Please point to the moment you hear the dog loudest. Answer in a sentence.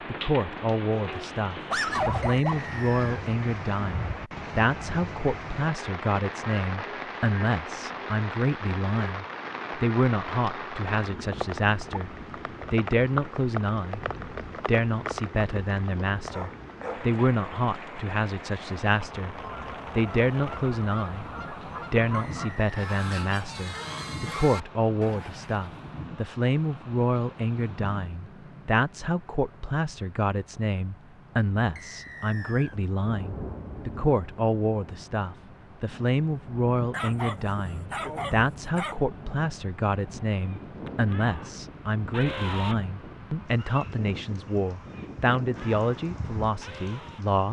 The volume of the dog peaks at 2 seconds.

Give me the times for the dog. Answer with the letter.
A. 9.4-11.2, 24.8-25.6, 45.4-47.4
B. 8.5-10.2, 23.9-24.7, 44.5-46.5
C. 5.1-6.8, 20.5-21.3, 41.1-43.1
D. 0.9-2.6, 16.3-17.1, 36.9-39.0
D.